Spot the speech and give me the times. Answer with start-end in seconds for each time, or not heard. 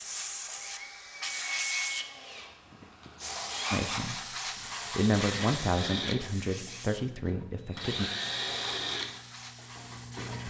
3.7-4.3, 4.9-8.1.